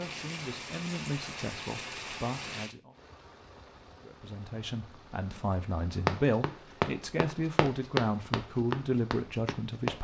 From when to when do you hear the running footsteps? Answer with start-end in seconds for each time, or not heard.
6.0-9.9.